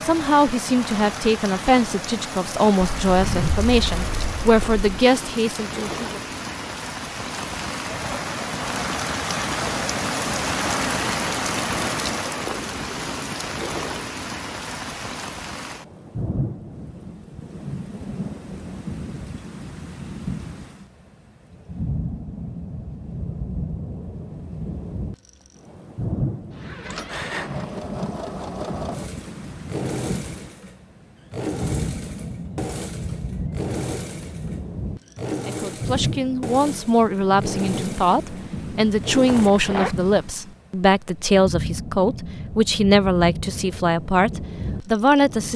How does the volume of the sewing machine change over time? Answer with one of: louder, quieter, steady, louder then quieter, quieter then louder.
steady.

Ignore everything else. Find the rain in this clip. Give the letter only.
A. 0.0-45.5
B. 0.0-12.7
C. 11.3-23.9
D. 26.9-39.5
A.